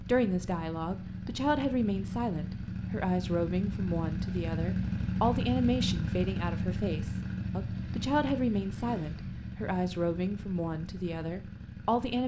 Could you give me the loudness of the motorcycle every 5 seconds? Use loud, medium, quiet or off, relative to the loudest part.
loud, loud, medium.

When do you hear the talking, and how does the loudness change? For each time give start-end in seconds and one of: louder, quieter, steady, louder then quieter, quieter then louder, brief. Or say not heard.
0.0-12.2 steady.